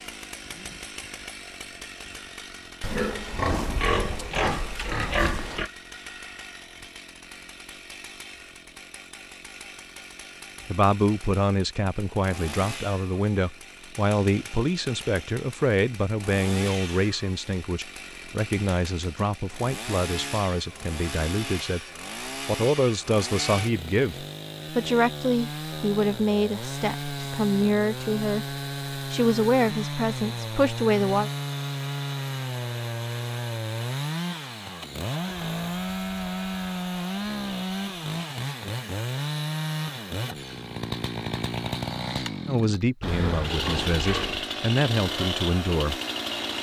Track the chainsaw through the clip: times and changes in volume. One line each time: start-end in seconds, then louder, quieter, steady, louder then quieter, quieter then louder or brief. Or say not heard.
0.0-46.5 louder.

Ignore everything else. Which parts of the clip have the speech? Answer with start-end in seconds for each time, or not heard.
10.7-21.8, 22.4-31.3, 42.5-46.0.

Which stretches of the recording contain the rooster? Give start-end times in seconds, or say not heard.
not heard.